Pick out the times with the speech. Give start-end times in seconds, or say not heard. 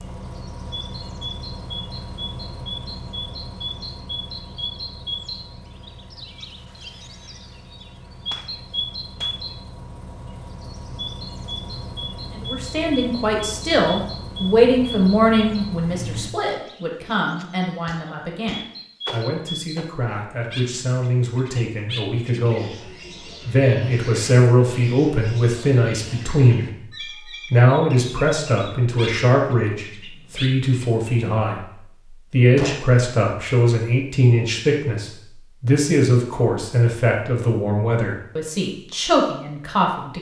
12.3-40.1.